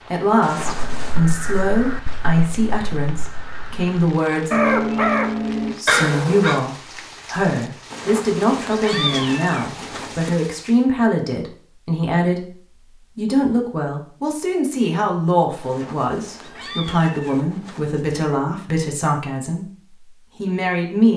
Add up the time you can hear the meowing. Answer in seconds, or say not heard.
6 s.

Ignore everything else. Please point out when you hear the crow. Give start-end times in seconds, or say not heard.
0.7-6.6.